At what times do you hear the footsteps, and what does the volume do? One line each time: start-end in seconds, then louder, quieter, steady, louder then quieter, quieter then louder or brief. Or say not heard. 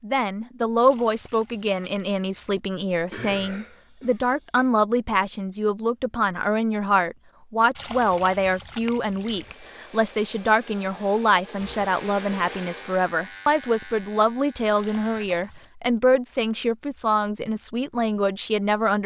not heard.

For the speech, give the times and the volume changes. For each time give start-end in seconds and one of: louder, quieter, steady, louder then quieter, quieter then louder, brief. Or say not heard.
0.0-19.0 steady.